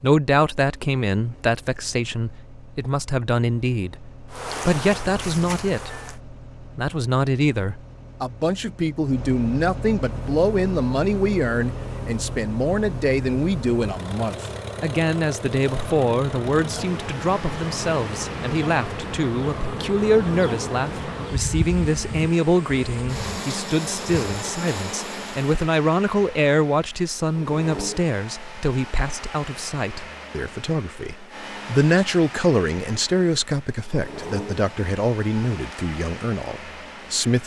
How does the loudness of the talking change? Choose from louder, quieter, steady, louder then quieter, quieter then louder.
steady.